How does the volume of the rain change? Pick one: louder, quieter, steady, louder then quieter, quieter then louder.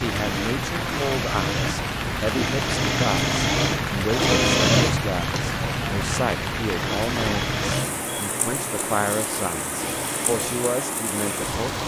steady.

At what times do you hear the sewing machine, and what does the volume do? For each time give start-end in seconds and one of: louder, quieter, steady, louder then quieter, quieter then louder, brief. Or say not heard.
0.0-11.8 louder then quieter.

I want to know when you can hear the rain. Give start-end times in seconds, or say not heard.
0.0-11.8.